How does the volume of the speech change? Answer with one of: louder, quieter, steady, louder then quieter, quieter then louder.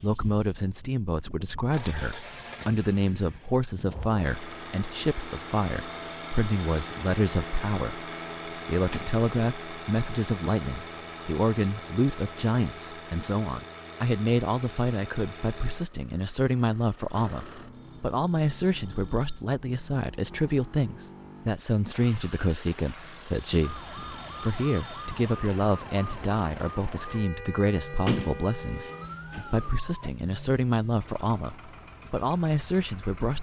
steady.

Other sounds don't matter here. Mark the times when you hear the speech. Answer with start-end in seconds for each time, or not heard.
0.0-33.3.